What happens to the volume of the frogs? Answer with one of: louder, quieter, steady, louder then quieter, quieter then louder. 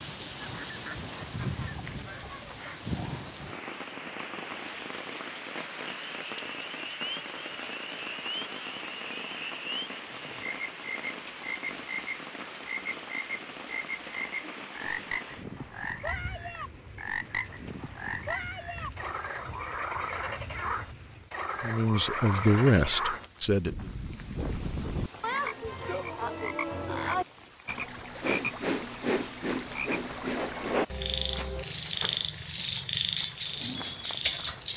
louder.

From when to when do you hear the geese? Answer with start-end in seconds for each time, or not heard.
0.3-2.9.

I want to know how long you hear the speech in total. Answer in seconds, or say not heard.
2 s.